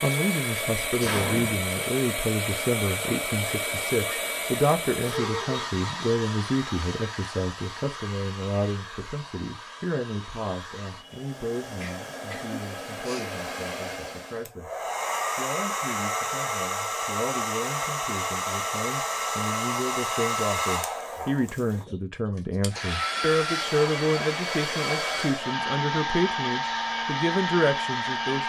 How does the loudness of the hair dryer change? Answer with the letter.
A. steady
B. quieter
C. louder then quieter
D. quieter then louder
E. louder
D.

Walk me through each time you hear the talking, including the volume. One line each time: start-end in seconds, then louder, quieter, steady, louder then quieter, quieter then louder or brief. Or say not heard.
0.0-28.4 quieter then louder.